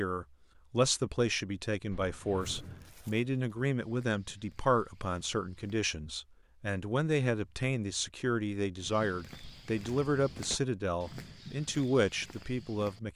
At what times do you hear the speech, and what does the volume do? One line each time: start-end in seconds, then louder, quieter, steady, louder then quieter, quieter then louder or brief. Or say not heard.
0.0-13.1 steady.